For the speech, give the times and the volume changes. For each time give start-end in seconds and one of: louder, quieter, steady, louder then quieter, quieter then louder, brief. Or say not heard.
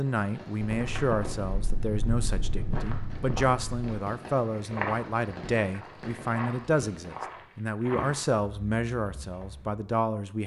0.0-10.4 steady.